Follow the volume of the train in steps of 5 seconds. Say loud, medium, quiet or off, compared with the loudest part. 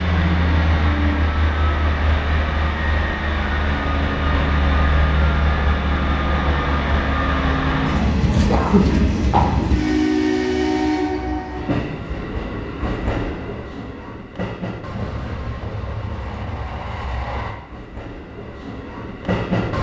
loud, loud, loud, medium.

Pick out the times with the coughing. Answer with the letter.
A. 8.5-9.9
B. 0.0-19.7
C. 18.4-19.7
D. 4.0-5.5
A.